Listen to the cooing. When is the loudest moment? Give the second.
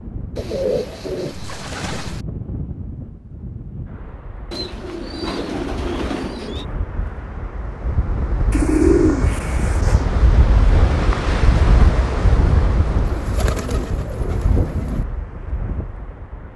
9 s.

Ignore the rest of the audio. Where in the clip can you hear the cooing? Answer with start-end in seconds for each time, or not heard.
0.3-2.2, 4.5-6.7, 8.5-10.1, 13.1-15.1.